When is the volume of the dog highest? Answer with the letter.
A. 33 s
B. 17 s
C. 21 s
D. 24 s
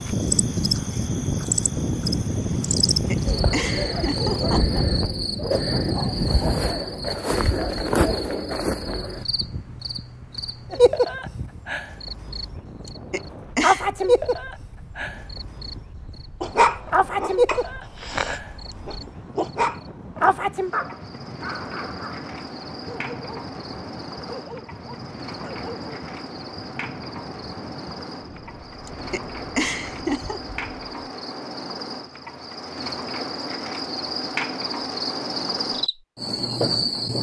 B.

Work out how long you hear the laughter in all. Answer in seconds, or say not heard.
4 s.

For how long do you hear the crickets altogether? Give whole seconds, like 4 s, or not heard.
37 s.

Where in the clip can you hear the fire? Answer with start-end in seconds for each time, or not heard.
not heard.